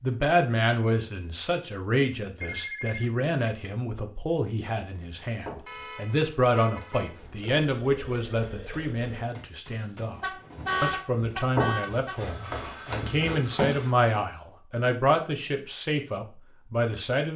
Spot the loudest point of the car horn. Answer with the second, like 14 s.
11 s.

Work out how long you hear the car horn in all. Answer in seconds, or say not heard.
4 s.